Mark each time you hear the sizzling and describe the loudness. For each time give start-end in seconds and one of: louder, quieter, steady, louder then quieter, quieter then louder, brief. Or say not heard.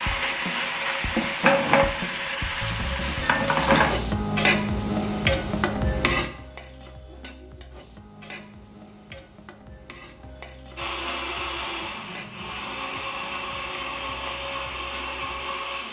0.0-15.8 quieter.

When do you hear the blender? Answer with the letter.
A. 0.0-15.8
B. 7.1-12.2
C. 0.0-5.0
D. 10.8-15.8
D.